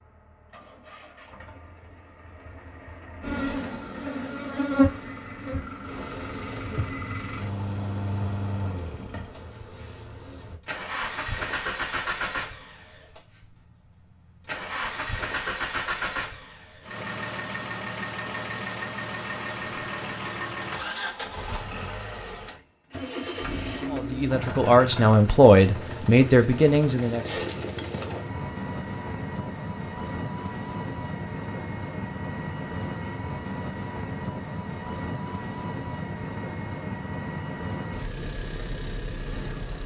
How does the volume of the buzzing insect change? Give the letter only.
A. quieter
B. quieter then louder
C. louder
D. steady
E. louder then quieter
A.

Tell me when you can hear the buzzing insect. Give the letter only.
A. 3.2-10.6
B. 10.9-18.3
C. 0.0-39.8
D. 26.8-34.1
A.